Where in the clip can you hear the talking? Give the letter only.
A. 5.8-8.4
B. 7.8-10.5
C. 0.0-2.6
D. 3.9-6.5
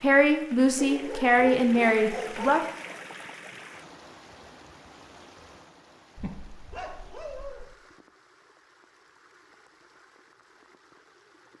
C.